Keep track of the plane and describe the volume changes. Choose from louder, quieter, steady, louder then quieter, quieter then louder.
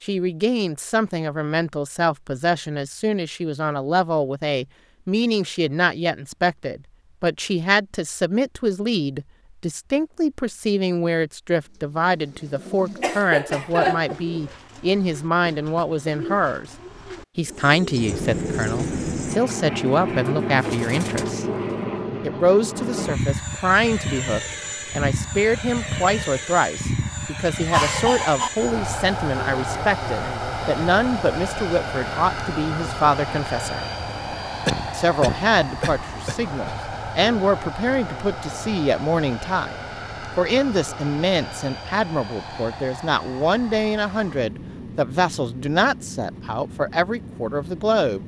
quieter.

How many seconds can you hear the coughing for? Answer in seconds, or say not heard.
4 s.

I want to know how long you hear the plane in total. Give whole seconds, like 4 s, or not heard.
30 s.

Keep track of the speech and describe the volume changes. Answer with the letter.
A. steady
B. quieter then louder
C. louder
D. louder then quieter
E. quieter
A.